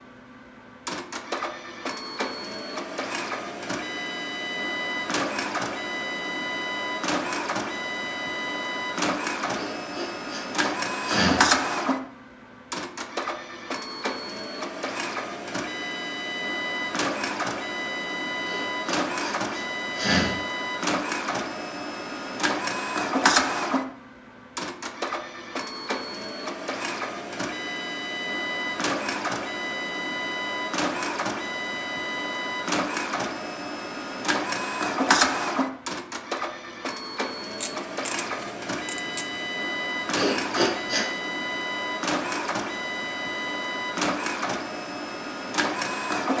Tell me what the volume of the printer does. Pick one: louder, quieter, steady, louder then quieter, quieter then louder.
steady.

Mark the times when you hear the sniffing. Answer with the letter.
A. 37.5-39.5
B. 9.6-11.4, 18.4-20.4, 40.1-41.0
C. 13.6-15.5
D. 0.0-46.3
B.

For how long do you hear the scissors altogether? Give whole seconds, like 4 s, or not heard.
2 s.